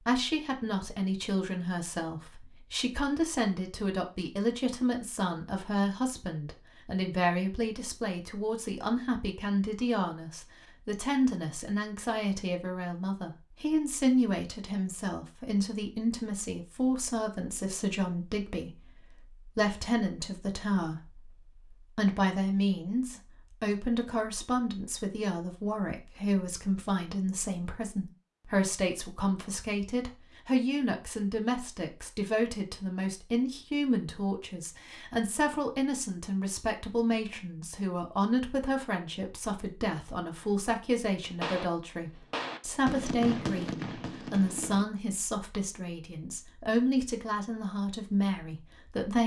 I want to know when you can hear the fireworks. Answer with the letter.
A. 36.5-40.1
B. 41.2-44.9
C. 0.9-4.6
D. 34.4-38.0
B.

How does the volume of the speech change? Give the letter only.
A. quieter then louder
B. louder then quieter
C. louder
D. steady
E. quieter
D.